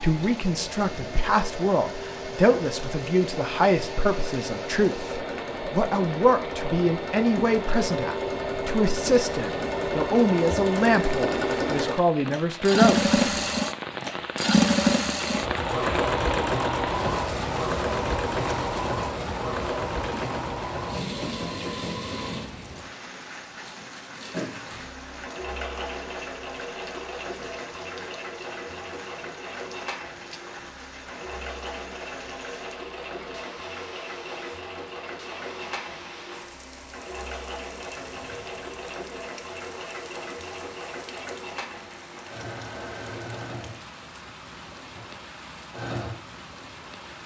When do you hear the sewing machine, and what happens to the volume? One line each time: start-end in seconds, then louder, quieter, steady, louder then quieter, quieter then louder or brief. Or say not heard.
0.0-47.2 louder then quieter.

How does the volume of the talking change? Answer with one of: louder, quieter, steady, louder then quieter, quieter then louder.
steady.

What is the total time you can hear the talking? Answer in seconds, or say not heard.
13 s.